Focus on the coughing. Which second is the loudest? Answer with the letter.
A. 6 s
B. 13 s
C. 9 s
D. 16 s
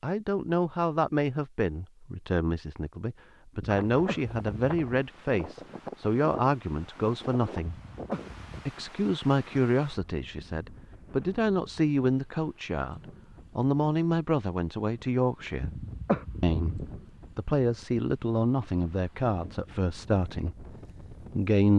D.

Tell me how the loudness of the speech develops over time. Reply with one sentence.
The loudness of the speech stays about the same.